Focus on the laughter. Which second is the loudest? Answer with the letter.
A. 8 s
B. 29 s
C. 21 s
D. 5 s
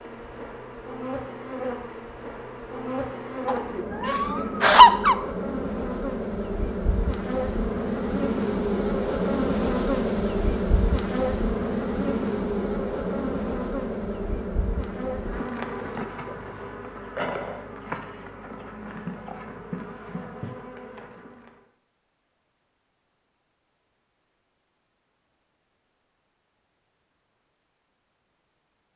D.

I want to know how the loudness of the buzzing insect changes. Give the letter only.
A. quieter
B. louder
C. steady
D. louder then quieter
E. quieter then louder
D.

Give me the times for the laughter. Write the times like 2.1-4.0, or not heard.
3.5-5.2.